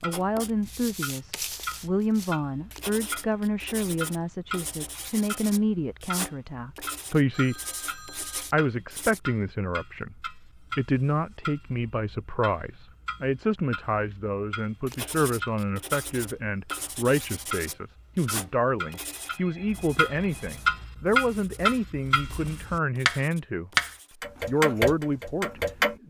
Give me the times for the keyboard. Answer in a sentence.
The keyboard can't be heard in this clip.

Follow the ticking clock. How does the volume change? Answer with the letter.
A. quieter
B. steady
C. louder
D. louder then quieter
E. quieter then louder
C.